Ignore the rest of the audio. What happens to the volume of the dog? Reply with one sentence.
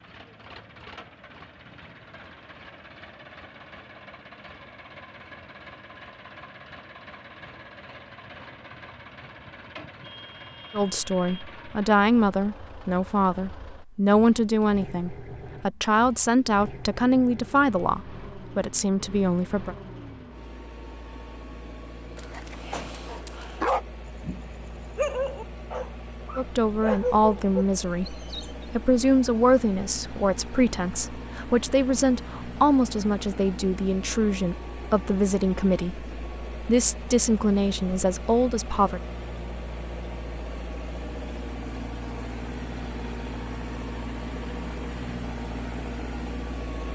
The volume of the dog goes up.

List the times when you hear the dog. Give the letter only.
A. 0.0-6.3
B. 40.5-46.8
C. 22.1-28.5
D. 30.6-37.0
C.